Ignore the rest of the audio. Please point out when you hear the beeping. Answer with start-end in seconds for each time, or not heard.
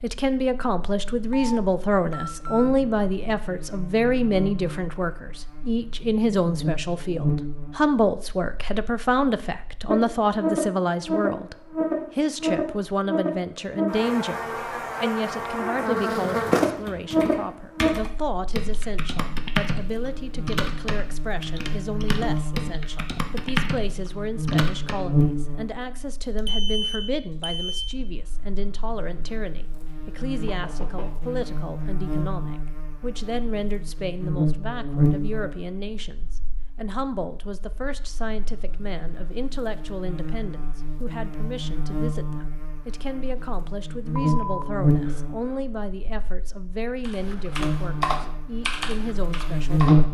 1.3-2.8, 26.4-27.9, 44.2-45.5.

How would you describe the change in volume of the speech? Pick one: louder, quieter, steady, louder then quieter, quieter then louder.
quieter.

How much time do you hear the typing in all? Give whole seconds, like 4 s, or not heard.
11 s.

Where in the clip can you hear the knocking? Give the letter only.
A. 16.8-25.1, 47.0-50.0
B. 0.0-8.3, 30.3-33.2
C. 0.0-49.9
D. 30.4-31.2
D.